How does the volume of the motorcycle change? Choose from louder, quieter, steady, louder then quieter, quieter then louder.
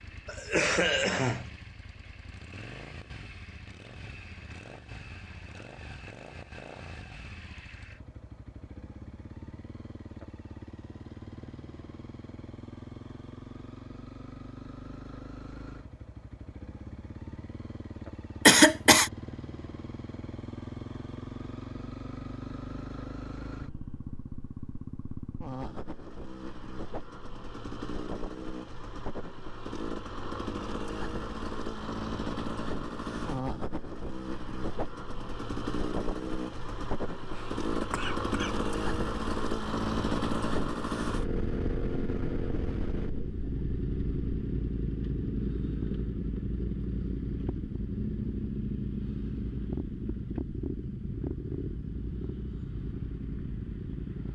louder.